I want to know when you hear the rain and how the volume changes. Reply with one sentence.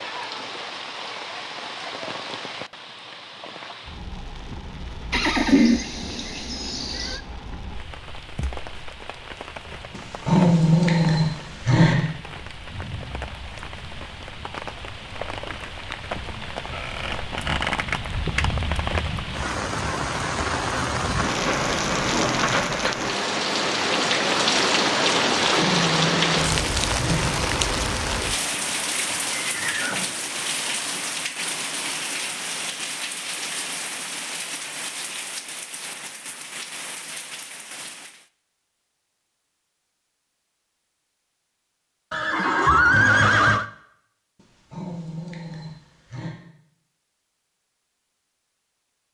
You can hear the rain from 0.0 to 38.2 s, getting louder then quieter.